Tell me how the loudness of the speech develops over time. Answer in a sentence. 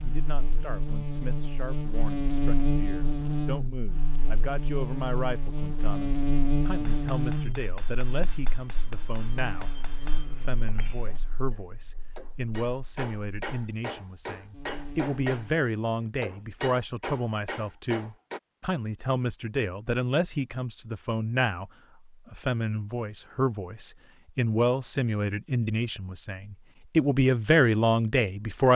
The loudness of the speech goes up.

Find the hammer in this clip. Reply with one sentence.
You can hear the hammer from 6.8 to 18.4 s.